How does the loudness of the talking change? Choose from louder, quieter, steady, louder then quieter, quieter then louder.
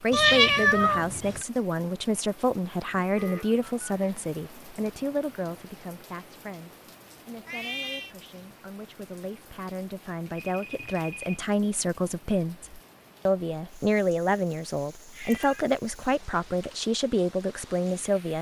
quieter then louder.